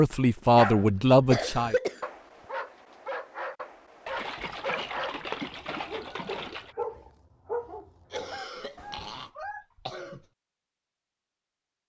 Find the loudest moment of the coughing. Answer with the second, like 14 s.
1 s.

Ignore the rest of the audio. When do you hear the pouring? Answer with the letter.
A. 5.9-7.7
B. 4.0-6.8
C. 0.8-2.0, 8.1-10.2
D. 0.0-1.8
B.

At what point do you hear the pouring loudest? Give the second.
5 s.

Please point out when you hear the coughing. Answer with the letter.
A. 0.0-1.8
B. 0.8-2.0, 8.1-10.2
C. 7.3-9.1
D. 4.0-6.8
B.